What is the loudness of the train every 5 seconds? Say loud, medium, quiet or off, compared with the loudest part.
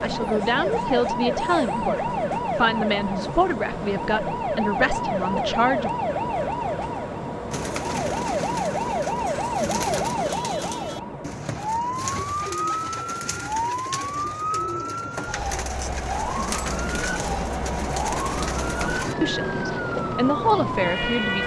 loud, loud, medium, loud, loud.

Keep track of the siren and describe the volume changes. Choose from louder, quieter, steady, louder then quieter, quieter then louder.
steady.